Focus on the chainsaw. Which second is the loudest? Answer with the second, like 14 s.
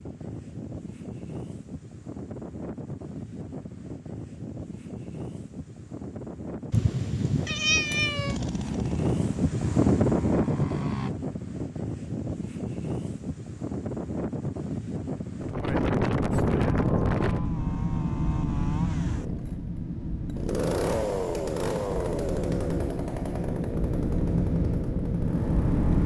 21 s.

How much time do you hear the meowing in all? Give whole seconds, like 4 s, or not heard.
2 s.